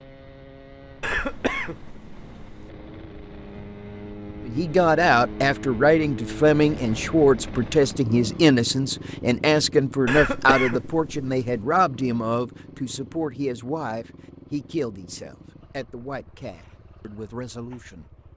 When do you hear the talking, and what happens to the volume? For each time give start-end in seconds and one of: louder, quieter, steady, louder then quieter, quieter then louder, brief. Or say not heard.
4.5-18.1 quieter.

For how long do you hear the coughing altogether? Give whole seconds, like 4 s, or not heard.
3 s.